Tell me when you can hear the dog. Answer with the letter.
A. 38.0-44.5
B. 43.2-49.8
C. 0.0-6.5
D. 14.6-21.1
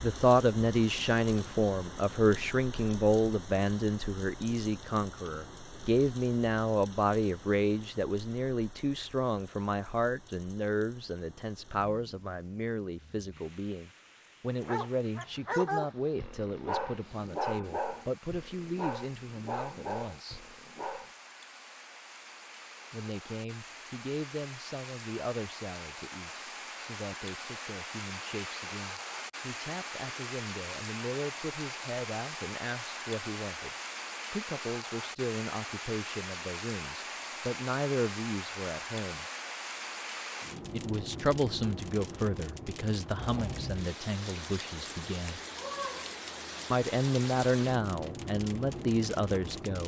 D.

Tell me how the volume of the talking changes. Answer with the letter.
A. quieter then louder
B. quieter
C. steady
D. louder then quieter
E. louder
A.